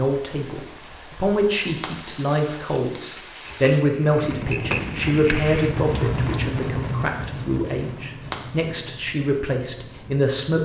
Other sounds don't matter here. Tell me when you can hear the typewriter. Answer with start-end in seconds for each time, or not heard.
3.5-5.3.